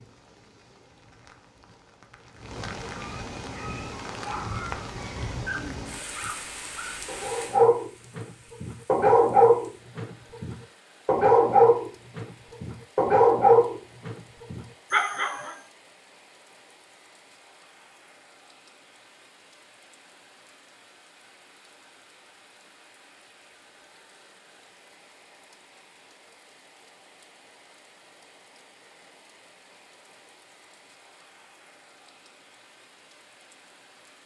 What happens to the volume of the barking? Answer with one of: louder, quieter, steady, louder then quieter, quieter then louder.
louder.